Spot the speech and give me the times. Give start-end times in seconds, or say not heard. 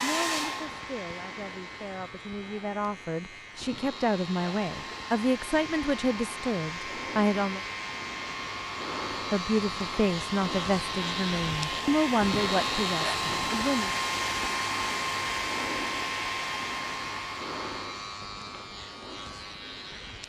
0.0-7.6, 9.3-13.9.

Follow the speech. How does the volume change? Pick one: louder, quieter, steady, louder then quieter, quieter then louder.
louder.